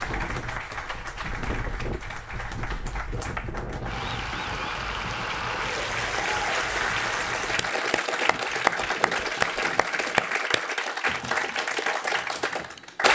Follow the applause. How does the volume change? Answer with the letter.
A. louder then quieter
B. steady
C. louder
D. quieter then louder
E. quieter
C.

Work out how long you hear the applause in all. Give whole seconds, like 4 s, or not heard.
13 s.